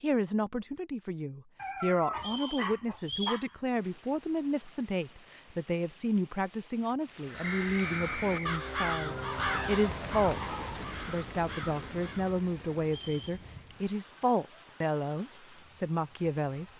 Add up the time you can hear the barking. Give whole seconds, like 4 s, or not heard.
4 s.